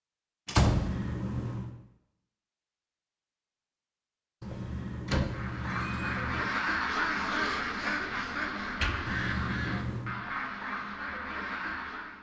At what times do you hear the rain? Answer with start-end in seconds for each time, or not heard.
not heard.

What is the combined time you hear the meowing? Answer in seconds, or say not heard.
4 s.